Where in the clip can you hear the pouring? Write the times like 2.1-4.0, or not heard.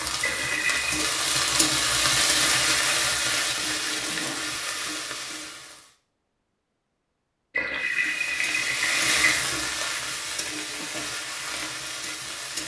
0.2-1.1, 7.5-9.4.